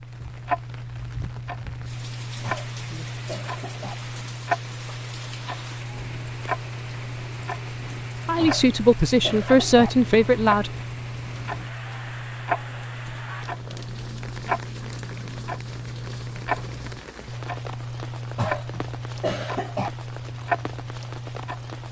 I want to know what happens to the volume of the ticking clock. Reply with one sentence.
The volume of the ticking clock stays about the same.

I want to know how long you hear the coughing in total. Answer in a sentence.
The coughing can be heard for 5 seconds in total.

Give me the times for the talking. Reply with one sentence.
You can hear the talking from 8.2 to 10.7 s.